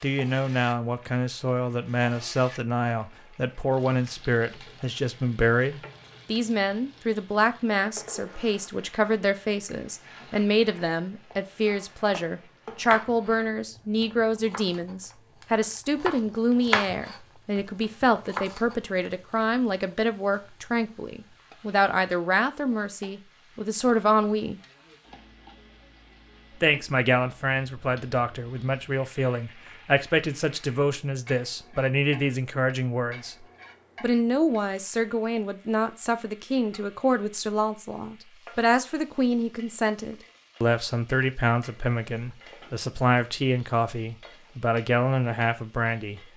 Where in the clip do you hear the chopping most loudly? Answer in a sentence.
The loudest moment of the chopping is at 17 seconds.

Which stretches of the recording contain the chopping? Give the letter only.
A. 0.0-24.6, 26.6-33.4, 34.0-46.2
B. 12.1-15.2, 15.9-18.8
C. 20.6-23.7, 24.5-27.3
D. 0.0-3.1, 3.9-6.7
B.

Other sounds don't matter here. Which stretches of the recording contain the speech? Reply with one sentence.
The speech can be heard from 0.0 to 24.6 s, from 26.6 to 33.4 s and from 34.0 to 46.2 s.